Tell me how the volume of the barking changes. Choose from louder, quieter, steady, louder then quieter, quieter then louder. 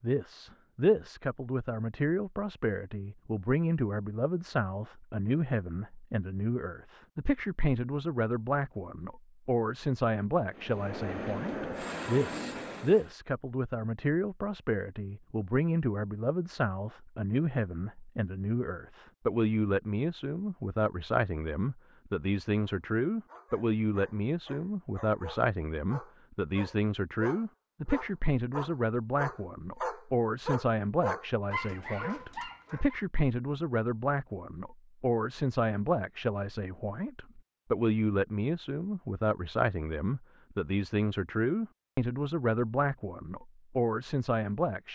louder.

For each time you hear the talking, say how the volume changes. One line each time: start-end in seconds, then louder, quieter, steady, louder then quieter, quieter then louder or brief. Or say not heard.
0.0-44.9 steady.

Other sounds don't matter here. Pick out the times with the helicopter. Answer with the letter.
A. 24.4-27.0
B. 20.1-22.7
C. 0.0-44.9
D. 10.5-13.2
D.